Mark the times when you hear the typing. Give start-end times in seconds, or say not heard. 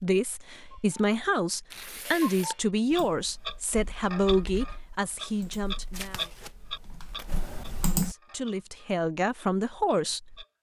2.9-8.2.